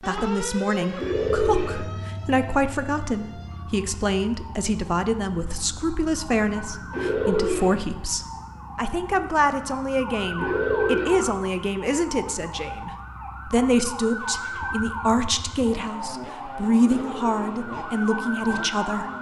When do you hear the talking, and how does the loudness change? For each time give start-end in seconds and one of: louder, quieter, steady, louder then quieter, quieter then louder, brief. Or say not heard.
0.1-19.1 steady.